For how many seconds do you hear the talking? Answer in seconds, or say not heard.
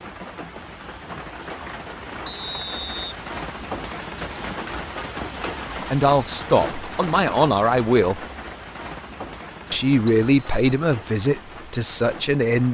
5 s.